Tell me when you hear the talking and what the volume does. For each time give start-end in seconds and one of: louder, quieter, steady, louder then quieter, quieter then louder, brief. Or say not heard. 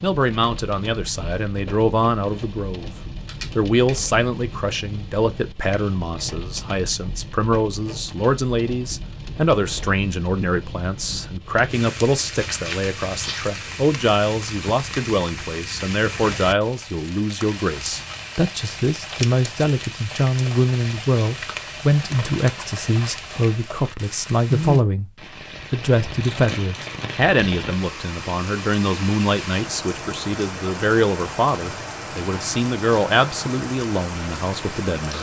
0.0-2.9 brief
3.5-25.1 steady
25.7-35.1 steady.